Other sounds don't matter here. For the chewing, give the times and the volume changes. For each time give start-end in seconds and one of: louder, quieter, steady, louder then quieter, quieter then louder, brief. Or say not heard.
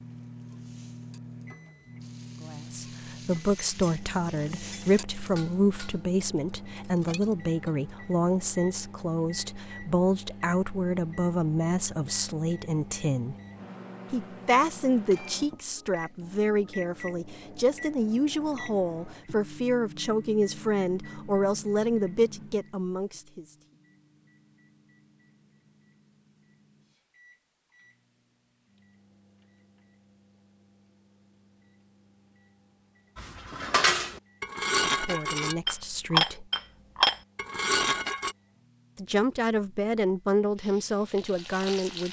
not heard.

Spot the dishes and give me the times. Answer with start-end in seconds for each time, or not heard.
3.0-7.9, 33.1-38.4.